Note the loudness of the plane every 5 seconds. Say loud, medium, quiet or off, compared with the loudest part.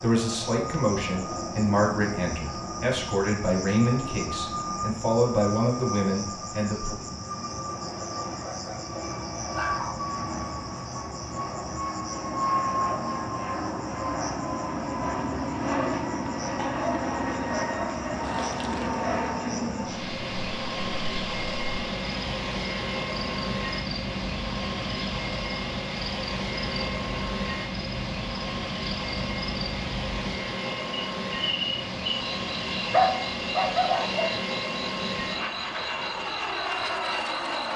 medium, medium, loud, loud, loud, loud, loud, loud.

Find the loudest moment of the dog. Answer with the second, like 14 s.
33 s.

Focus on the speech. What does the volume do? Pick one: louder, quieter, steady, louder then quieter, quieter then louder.
steady.